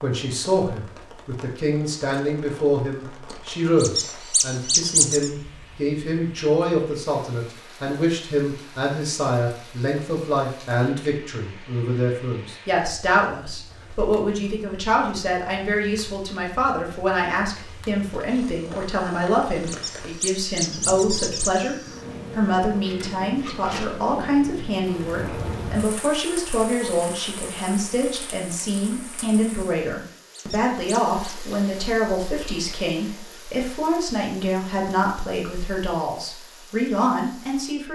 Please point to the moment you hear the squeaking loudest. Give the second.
5 s.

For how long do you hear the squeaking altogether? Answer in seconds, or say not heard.
4 s.